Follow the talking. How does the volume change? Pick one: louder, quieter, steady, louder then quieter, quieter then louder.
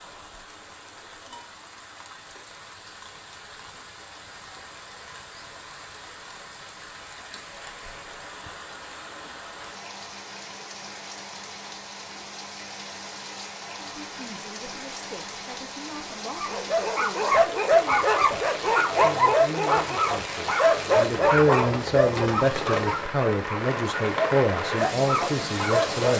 louder.